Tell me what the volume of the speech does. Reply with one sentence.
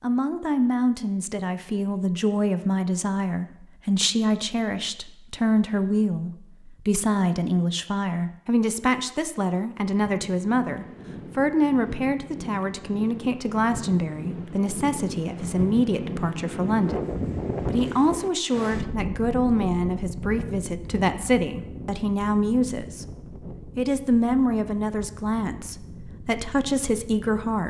The volume of the speech stays about the same.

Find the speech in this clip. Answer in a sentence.
The speech can be heard from 0.0 to 27.6 s.